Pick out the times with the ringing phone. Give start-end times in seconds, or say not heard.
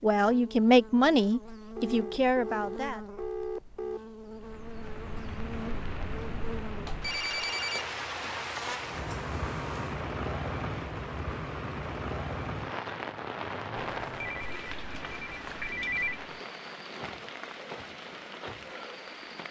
1.8-4.0, 6.8-8.8, 14.0-16.2.